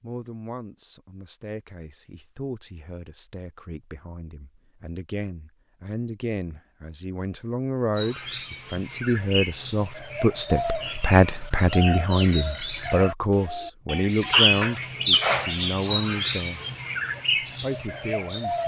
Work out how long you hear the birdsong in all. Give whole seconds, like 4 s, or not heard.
11 s.